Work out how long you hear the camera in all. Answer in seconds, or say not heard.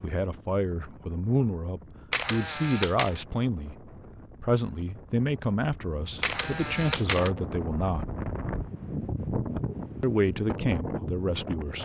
2 s.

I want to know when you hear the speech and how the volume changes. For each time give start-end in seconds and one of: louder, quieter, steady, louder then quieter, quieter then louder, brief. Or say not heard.
0.0-8.1 steady
10.0-11.7 brief.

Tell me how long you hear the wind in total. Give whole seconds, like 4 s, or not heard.
12 s.